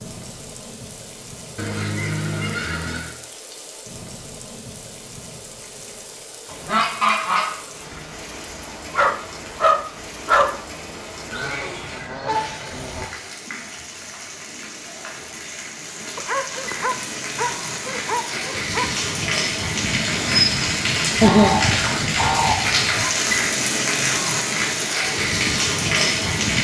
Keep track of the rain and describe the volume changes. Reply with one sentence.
The volume of the rain goes up.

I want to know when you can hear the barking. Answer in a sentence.
You can hear the barking from 8.9 to 10.6 s and from 16.1 to 18.9 s.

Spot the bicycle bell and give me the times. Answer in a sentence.
You can't hear the bicycle bell here.